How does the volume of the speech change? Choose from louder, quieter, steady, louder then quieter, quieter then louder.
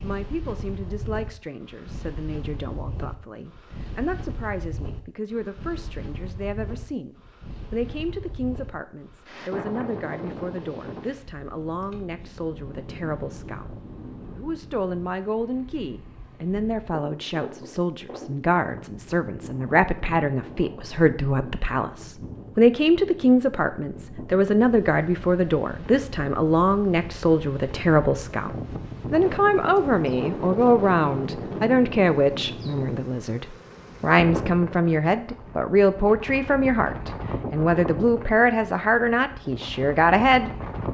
louder.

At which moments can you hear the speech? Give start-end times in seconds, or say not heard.
0.0-40.5.